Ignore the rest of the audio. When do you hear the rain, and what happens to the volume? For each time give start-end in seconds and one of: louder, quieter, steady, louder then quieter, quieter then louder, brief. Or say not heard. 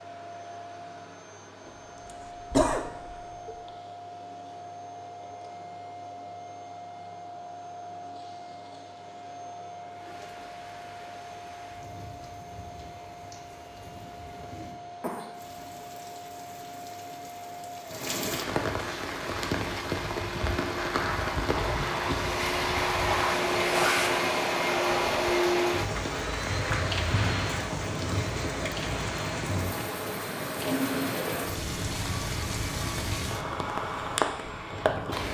9.9-35.2 louder.